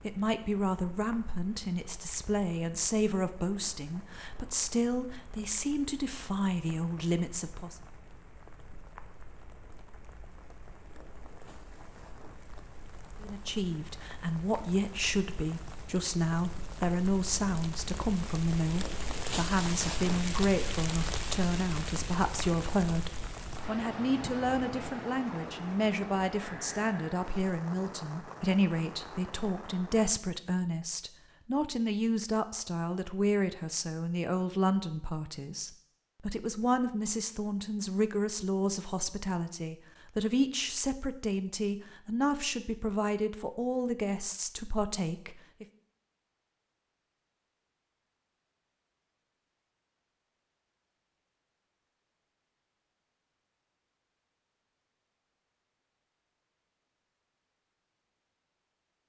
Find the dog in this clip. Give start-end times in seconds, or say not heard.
not heard.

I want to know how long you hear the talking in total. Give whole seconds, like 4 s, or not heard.
40 s.